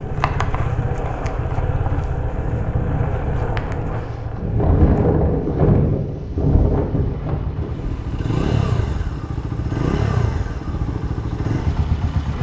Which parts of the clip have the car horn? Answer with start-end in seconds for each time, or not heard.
not heard.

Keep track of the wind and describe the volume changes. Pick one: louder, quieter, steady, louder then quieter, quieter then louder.
louder then quieter.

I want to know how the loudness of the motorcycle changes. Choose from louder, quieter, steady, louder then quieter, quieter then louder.
quieter then louder.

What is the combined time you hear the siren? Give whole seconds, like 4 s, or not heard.
not heard.